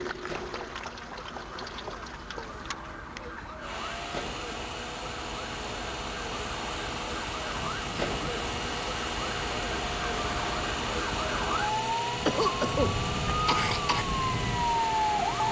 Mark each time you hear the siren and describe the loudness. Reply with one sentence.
You can hear the siren from 0.0 to 15.4 s, getting louder.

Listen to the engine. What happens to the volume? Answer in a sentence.
The volume of the engine goes up.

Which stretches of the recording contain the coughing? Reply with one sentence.
You can hear the coughing from 12.2 to 14.1 s.